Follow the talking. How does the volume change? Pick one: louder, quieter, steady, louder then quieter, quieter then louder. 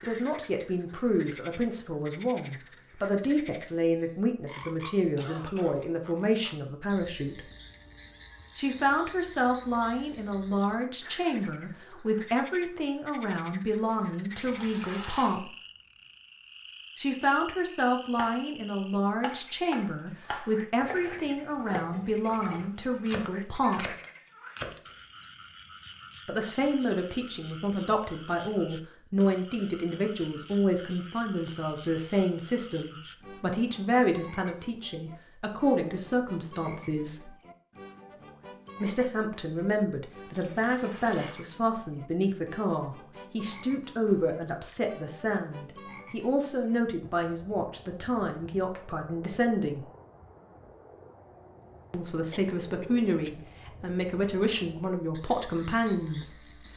steady.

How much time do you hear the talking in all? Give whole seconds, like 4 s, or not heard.
48 s.